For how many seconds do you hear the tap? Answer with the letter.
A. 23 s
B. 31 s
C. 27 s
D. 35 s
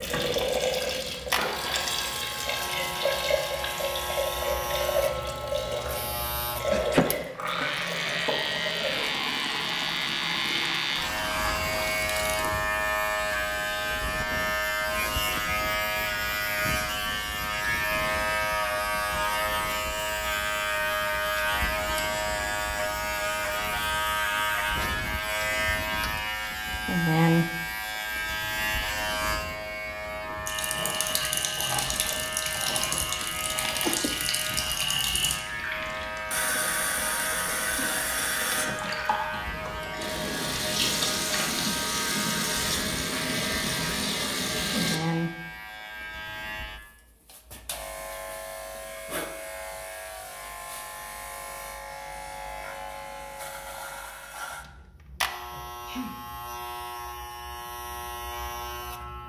C.